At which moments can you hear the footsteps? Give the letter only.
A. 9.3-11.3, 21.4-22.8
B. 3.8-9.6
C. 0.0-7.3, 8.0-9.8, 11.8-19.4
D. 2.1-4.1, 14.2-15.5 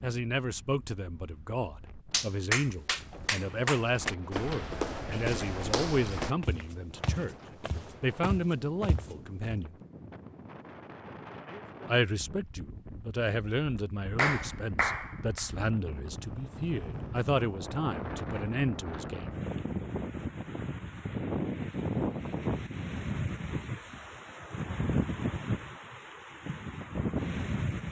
B.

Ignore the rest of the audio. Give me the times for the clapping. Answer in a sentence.
You can hear the clapping from 2.1 to 4.1 s and from 14.2 to 15.5 s.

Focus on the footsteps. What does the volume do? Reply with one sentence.
The volume of the footsteps goes down, then up.